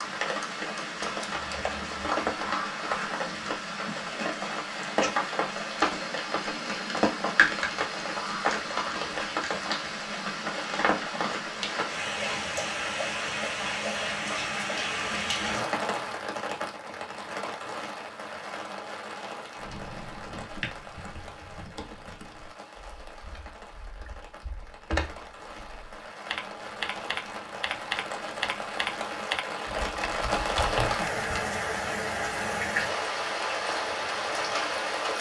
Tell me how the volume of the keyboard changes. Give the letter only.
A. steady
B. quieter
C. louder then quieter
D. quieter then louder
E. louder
D.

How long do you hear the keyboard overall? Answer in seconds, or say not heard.
12 s.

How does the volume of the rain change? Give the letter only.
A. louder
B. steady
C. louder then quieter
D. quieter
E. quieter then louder
E.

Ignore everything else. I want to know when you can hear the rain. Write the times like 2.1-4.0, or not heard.
0.0-35.1.